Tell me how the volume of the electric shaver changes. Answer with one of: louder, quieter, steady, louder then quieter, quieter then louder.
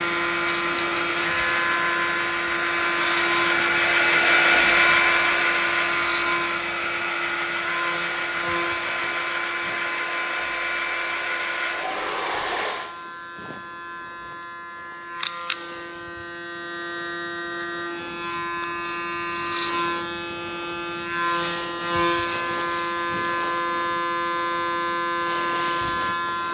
quieter then louder.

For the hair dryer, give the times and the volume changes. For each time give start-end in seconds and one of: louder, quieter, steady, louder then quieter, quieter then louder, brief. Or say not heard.
0.0-12.9 louder then quieter.